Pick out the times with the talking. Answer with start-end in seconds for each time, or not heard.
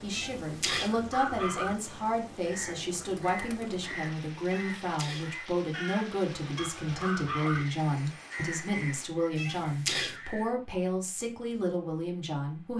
0.0-12.7.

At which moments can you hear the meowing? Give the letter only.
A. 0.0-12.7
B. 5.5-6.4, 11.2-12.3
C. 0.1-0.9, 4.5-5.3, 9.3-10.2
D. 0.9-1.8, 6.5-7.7
C.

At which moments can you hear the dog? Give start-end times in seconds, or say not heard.
0.9-1.8, 6.5-7.7.